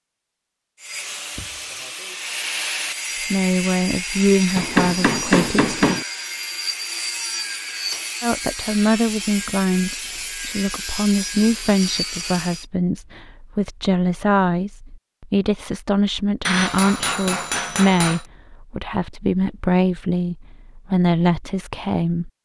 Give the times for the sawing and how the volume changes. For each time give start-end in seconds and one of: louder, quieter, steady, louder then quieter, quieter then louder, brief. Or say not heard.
0.8-12.7 steady.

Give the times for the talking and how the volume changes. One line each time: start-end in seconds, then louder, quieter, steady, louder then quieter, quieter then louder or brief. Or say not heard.
3.2-5.8 brief
8.2-22.3 steady.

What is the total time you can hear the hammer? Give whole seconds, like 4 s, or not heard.
3 s.